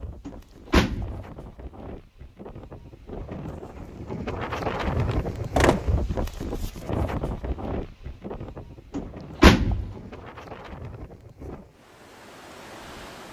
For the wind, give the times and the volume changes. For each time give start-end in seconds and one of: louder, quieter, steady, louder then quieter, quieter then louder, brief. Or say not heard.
0.0-13.2 louder then quieter.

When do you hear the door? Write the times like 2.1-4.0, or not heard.
0.2-1.2, 5.1-5.8, 8.9-9.9.